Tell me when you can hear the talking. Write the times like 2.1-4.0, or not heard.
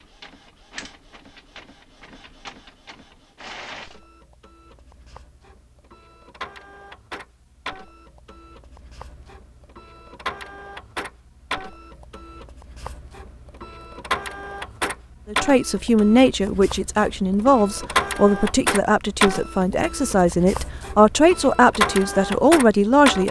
15.3-23.2.